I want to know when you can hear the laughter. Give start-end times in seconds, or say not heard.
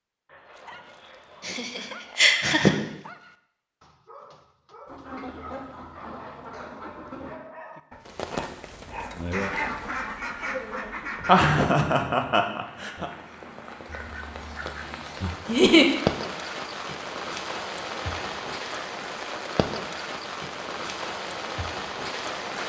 1.4-2.8, 11.2-13.1, 15.4-15.8.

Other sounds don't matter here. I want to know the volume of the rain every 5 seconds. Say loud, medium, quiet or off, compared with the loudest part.
off, loud, medium, loud, loud.